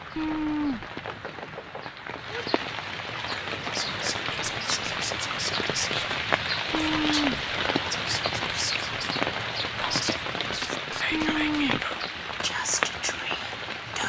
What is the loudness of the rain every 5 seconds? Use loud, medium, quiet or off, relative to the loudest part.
medium, loud, loud.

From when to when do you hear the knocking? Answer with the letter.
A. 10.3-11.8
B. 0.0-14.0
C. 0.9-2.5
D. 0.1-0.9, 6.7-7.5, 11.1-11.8
C.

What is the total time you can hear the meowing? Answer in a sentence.
The meowing can be heard for 2 seconds in total.